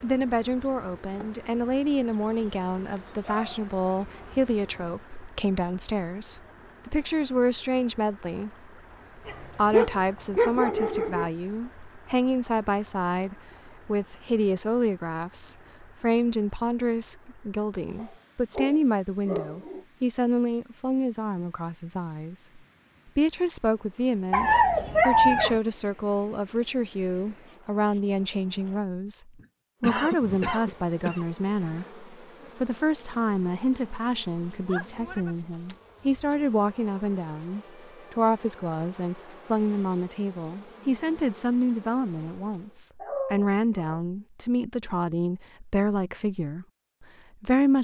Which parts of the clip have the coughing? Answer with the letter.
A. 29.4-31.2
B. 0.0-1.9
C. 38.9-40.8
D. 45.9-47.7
A.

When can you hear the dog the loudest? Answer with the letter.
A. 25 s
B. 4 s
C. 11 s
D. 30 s
A.